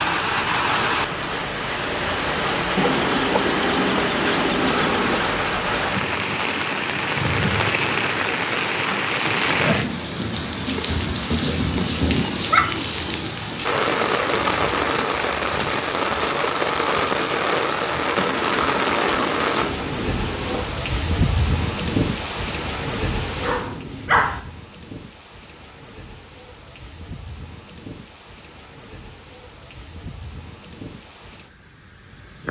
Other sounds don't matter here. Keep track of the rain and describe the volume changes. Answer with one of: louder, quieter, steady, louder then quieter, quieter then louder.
quieter.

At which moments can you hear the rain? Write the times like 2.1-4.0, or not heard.
0.0-32.4.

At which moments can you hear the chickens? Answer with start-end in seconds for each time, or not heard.
2.8-5.2, 18.1-20.6.